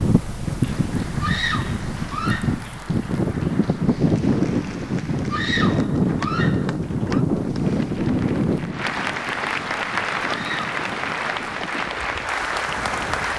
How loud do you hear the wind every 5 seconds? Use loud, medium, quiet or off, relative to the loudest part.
loud, loud, quiet.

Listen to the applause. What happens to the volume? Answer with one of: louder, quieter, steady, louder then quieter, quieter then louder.
louder.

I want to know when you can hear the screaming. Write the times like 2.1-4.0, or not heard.
1.2-2.5, 5.2-7.2, 10.2-10.7.